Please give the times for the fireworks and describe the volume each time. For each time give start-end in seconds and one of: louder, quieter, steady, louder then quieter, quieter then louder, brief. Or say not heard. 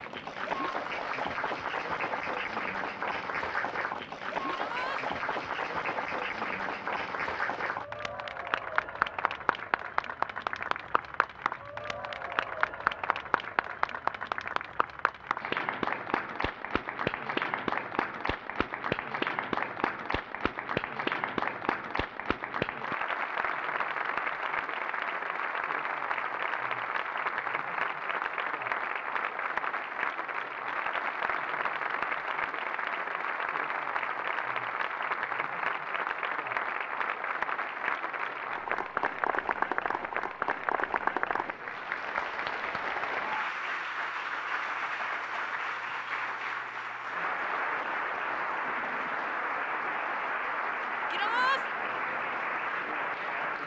not heard.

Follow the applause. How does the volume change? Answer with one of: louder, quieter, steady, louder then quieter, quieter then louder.
steady.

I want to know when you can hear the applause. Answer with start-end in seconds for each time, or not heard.
0.0-53.6.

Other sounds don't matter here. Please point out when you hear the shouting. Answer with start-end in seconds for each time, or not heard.
4.5-5.0, 51.1-51.6.